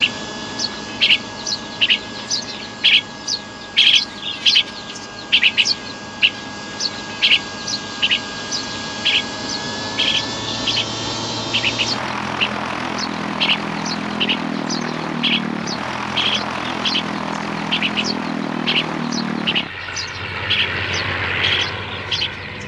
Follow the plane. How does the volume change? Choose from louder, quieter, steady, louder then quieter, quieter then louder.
louder.